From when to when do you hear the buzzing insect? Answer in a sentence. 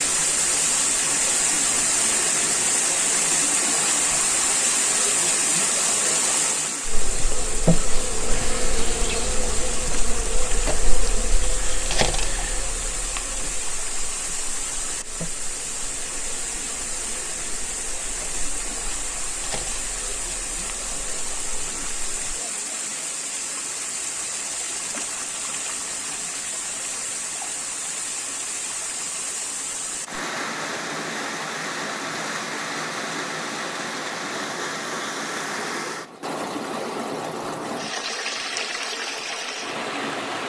You can hear the buzzing insect from 6.8 to 22.2 s.